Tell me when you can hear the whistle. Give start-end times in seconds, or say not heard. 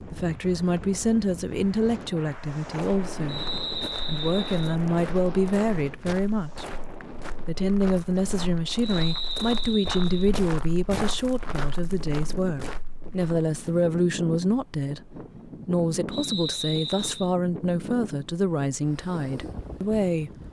3.2-4.8, 8.8-10.3, 16.1-17.3.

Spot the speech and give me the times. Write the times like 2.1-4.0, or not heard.
0.0-3.4, 4.0-6.7, 7.5-20.4.